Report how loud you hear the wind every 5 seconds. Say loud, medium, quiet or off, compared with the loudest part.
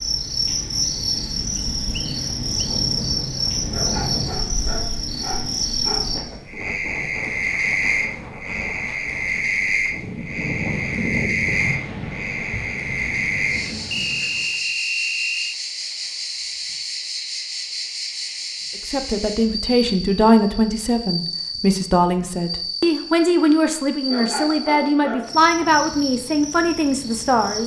loud, medium, loud, off, off, off.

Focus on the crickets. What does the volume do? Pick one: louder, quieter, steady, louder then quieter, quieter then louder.
quieter.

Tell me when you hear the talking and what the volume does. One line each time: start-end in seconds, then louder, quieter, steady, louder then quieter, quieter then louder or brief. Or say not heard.
18.9-27.6 steady.